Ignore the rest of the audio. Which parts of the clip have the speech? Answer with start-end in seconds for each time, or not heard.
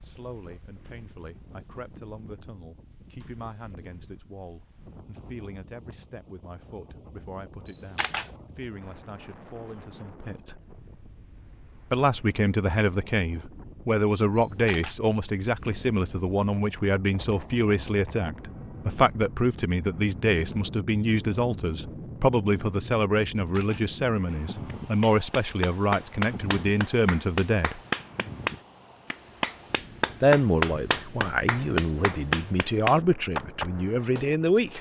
0.0-10.6, 11.9-27.8, 30.2-34.7.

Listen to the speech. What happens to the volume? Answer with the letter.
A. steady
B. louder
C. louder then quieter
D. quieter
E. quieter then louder
B.